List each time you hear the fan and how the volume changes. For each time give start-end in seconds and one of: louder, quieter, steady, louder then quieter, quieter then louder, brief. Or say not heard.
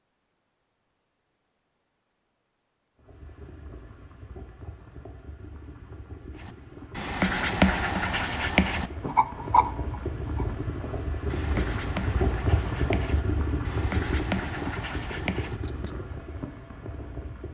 3.0-17.4 louder then quieter.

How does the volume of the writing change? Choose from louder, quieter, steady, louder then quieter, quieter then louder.
quieter.